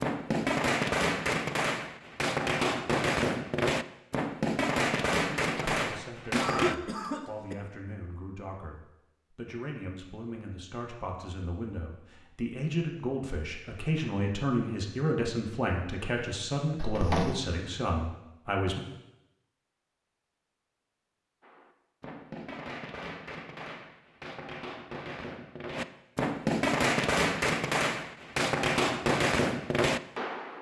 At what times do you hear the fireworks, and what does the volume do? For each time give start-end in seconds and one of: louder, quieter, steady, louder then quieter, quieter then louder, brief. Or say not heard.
0.0-6.8 steady
21.4-30.5 louder.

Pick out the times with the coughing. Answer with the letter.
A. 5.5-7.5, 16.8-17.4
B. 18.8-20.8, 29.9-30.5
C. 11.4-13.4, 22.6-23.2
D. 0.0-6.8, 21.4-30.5
A.